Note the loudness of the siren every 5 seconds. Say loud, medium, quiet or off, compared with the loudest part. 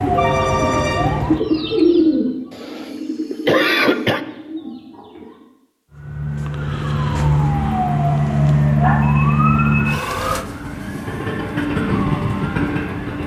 medium, loud, quiet.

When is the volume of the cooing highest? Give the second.
2 s.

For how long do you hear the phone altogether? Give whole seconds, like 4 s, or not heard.
2 s.